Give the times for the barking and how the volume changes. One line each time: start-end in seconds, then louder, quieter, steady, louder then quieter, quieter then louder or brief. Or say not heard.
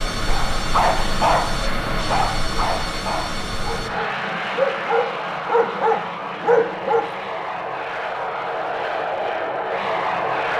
0.2-7.0 quieter then louder.